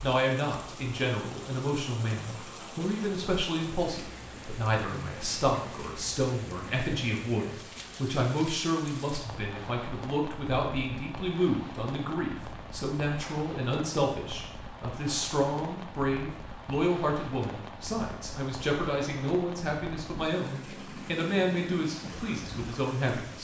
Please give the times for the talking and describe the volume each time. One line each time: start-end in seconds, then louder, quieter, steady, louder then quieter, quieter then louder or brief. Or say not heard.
0.0-23.3 steady.